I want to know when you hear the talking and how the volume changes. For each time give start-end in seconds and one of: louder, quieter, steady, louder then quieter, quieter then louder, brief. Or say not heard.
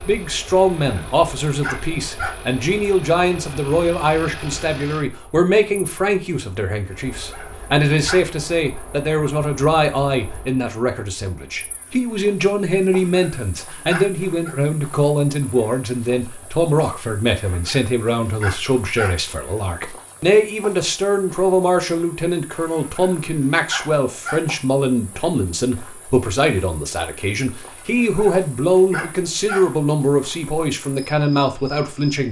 0.0-32.2 steady.